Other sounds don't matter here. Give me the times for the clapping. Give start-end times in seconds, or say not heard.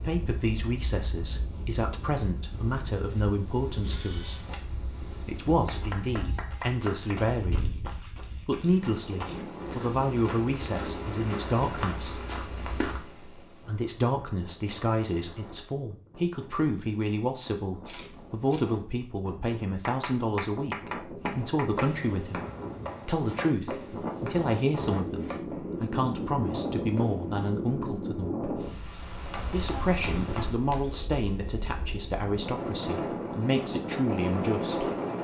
5.6-7.2, 19.9-21.9, 29.3-31.1.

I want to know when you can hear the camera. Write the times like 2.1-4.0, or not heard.
3.8-4.5, 17.9-18.6.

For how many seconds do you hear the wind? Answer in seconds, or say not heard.
35 s.